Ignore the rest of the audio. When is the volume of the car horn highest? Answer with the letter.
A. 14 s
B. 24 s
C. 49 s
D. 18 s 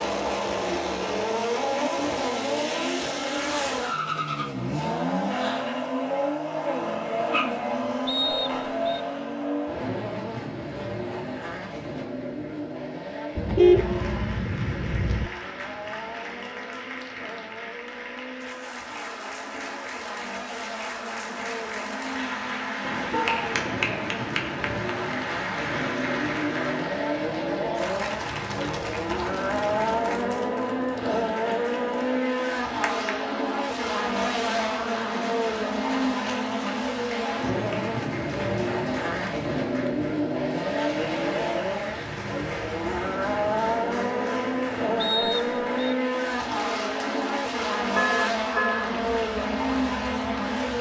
A.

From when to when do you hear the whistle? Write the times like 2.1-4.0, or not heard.
8.1-9.0, 45.0-46.0.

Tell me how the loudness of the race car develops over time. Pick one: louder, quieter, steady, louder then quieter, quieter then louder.
quieter then louder.